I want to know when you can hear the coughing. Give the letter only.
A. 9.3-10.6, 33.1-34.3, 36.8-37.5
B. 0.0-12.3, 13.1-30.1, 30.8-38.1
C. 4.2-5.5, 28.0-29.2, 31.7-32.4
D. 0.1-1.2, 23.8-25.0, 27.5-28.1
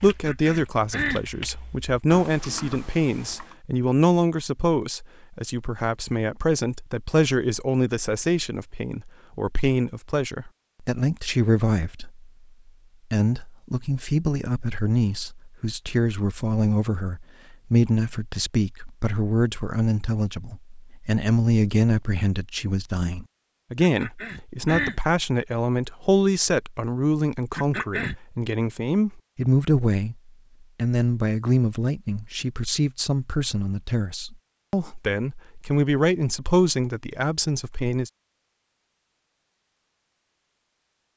D.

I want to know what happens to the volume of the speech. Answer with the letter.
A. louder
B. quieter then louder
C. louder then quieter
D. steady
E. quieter
D.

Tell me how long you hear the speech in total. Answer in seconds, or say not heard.
37 s.